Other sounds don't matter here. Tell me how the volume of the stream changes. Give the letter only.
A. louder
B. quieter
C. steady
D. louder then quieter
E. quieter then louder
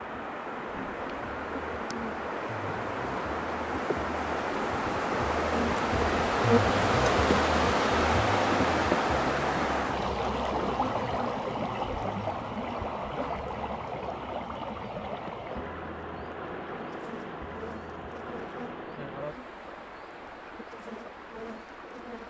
D.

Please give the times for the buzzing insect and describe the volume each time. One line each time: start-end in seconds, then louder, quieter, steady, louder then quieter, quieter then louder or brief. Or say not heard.
0.0-22.2 louder then quieter.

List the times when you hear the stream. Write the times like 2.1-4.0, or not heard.
0.0-22.2.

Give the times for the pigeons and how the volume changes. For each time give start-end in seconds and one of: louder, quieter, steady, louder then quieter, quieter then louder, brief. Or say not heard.
not heard.